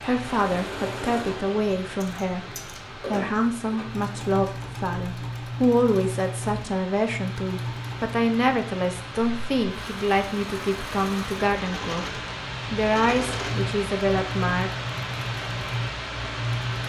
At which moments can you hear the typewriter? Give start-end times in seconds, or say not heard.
not heard.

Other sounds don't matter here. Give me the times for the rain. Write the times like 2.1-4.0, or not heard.
0.0-16.8.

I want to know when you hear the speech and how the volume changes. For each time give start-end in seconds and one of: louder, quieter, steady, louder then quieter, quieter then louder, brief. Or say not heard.
0.0-14.7 steady.